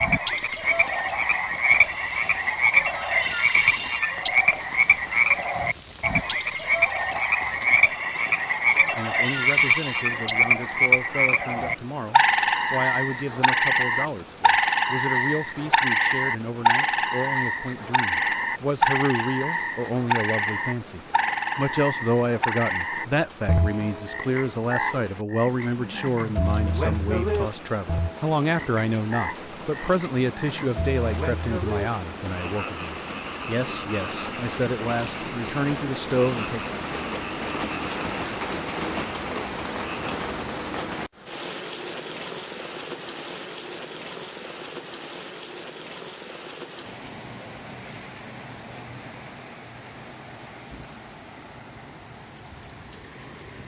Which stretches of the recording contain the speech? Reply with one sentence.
The speech can be heard from 8.9 to 36.6 s.